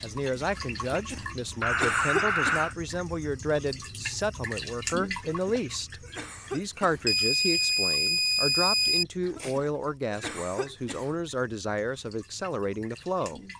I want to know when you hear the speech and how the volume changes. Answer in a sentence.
You can hear the speech from 0.0 to 13.4 s, at a steady volume.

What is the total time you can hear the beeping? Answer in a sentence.
You can hear the beeping for 3 seconds altogether.